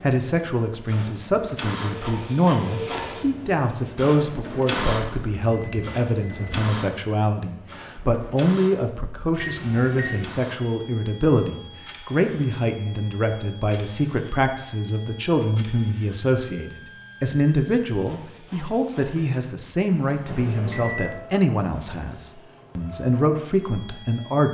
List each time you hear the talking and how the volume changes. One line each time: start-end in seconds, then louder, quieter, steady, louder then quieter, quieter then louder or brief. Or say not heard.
0.0-24.4 steady.